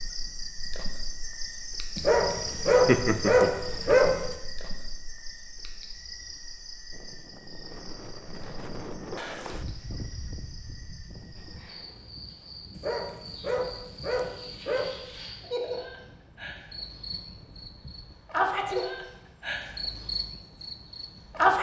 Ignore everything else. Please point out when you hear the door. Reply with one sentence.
The door can't be heard in this clip.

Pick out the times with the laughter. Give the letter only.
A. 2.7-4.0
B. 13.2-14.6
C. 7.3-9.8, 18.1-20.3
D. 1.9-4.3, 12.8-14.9
A.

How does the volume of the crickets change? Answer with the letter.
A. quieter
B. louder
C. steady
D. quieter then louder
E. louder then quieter
D.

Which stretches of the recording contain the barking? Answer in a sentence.
You can hear the barking from 1.9 to 4.3 s and from 12.8 to 14.9 s.